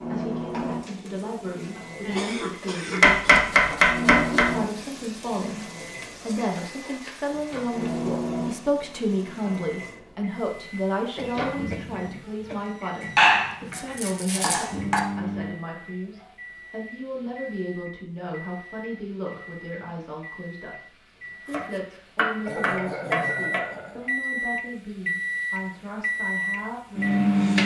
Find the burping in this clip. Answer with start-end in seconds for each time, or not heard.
not heard.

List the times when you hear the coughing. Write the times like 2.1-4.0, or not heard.
2.0-3.1, 11.2-12.7, 22.4-24.1.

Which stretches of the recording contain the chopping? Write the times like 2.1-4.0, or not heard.
3.0-4.5, 13.0-15.0, 21.5-23.6.